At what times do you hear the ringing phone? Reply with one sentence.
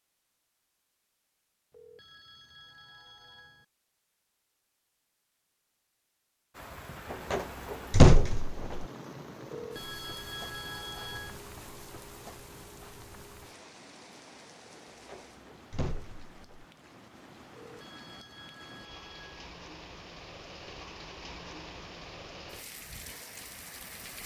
You can hear the ringing phone from 1.7 to 3.6 s, from 9.5 to 11.4 s and from 17.6 to 19.5 s.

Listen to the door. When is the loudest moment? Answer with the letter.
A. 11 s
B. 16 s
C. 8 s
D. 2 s
C.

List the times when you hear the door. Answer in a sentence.
The door can be heard from 7.1 to 8.8 s and from 15.1 to 16.6 s.